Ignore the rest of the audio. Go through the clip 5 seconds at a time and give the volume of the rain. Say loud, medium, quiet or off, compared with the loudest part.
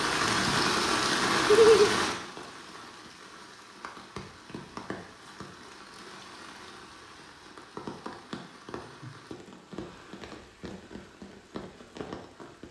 loud, quiet, quiet.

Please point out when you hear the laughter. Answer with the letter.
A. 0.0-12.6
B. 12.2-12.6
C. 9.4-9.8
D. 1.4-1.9
D.